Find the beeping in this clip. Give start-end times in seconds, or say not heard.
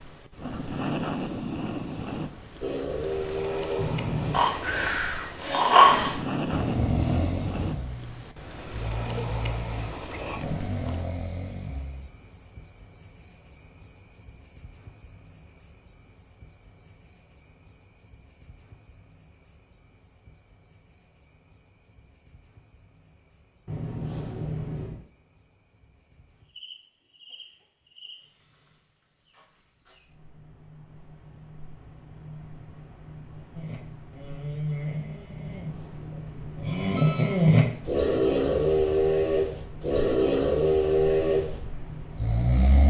3.8-4.4, 23.6-25.0, 35.3-37.2.